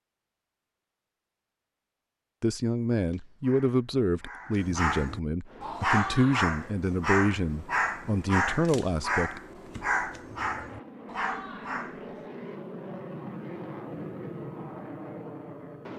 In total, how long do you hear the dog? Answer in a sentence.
You can hear the dog for 9 seconds altogether.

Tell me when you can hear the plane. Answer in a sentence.
The plane can be heard from 5.5 to 15.9 s.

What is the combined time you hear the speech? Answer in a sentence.
You can hear the speech for 7 seconds altogether.